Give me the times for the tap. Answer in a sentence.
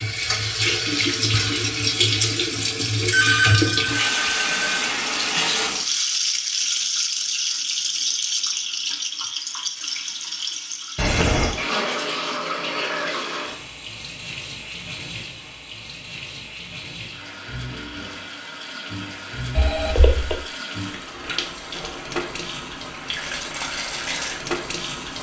The tap can be heard from 0.0 to 25.1 s.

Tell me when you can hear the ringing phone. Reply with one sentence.
The ringing phone can be heard from 3.1 to 4.8 s, from 10.9 to 11.6 s and from 19.6 to 20.4 s.